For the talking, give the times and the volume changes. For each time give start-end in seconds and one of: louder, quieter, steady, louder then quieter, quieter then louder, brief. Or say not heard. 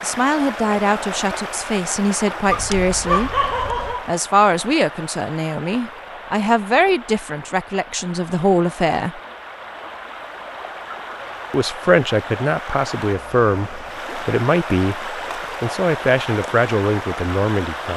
0.0-9.2 steady
11.5-17.9 steady.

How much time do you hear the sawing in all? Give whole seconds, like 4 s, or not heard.
not heard.